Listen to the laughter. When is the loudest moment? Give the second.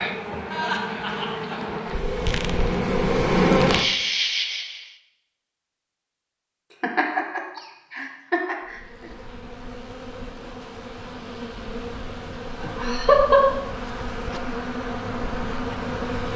13 s.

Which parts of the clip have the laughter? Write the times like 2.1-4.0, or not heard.
0.5-1.6, 6.8-9.1, 12.6-13.4.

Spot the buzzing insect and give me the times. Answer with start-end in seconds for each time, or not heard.
0.0-5.0, 8.7-16.3.